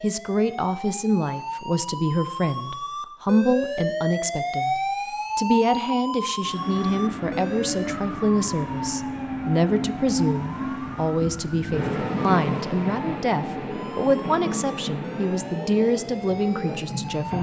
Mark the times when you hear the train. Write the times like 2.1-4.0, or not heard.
6.4-17.3.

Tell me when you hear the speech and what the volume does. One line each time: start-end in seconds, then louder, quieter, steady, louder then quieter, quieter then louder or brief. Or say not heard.
0.0-17.3 steady.